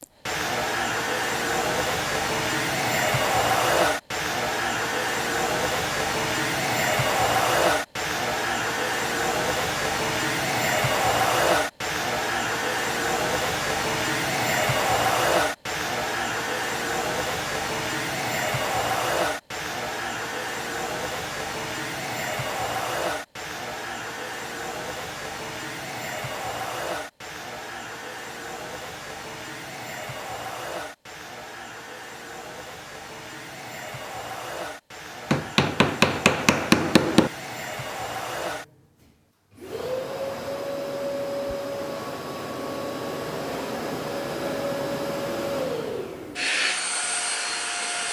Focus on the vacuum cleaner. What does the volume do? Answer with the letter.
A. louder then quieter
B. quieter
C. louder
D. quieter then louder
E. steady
D.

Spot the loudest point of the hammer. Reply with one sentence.
The volume of the hammer peaks at 37 seconds.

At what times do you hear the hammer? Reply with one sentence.
You can hear the hammer from 35.3 to 37.3 s.